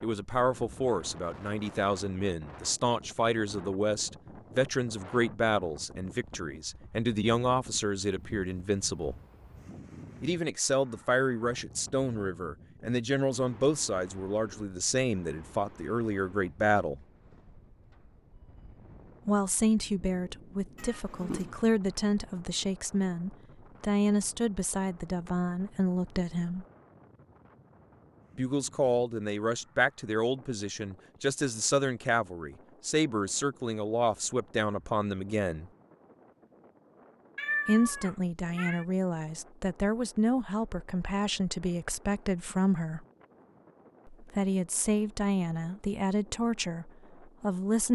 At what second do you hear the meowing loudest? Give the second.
38 s.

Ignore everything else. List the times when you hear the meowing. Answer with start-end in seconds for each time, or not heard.
20.8-21.6, 37.4-38.9.